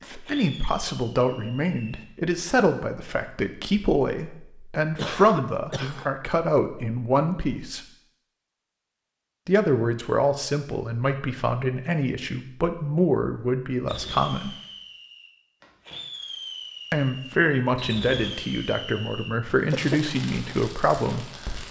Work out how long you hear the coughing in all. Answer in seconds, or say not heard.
2 s.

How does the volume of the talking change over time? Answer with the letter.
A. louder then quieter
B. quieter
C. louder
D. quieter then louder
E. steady
E.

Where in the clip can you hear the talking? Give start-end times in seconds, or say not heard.
0.1-7.8, 9.4-14.6, 16.9-21.6.